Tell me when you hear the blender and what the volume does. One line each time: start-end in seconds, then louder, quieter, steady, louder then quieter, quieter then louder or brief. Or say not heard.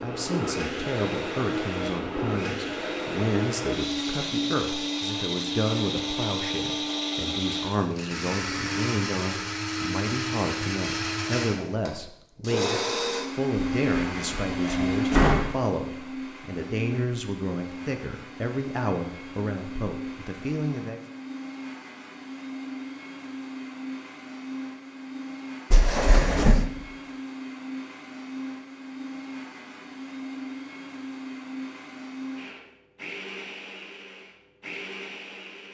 0.0-35.6 quieter.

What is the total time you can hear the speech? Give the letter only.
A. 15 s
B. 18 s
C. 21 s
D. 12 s
C.